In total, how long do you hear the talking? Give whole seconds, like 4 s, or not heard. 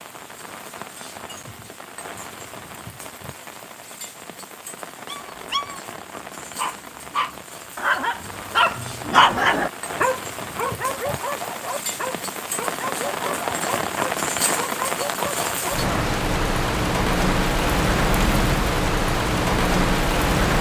not heard.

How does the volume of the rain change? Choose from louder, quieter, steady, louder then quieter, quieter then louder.
louder.